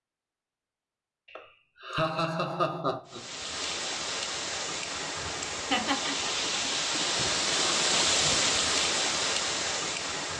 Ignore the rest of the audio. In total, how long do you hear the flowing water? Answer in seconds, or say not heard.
7 s.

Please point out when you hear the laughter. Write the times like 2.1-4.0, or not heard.
1.3-3.2, 5.5-6.3.